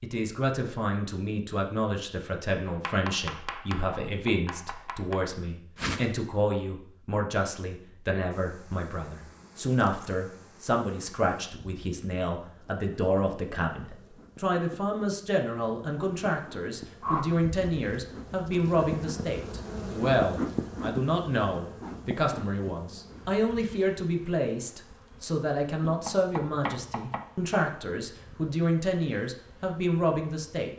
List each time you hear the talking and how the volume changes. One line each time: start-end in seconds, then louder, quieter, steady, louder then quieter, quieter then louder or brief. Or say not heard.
0.0-30.7 steady.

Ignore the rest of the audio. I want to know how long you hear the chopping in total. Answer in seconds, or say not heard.
4 s.